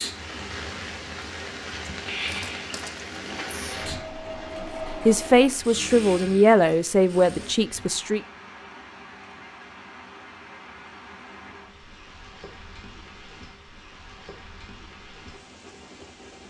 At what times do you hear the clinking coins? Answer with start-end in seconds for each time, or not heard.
2.2-3.0.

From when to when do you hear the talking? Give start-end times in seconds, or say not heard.
5.0-8.2.